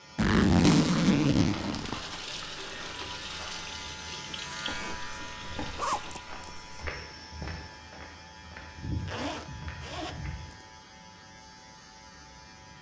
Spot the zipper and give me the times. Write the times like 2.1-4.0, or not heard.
0.1-2.0, 4.7-6.7, 9.0-10.7.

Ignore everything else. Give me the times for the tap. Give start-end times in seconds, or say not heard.
1.8-6.4.